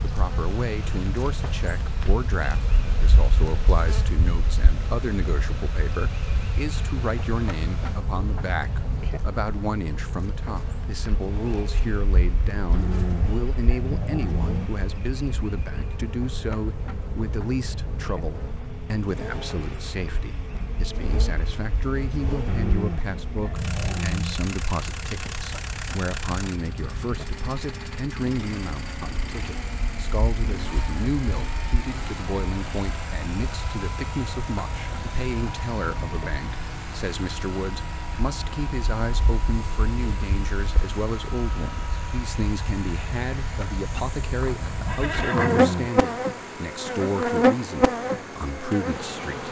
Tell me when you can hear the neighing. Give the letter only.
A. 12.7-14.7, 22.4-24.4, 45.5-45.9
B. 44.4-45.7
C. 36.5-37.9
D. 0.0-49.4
B.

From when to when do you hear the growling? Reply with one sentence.
You can hear the growling from 12.7 to 14.7 s, from 22.4 to 24.4 s and from 45.5 to 45.9 s.